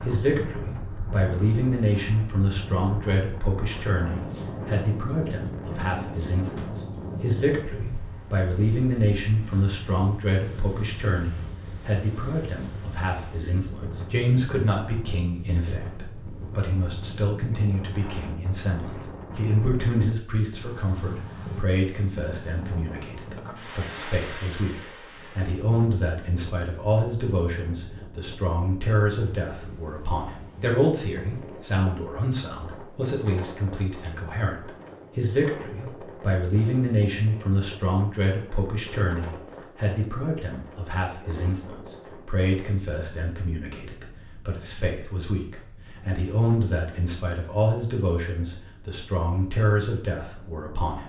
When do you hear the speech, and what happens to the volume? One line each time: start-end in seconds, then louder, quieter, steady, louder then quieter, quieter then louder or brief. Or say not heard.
0.1-51.0 steady.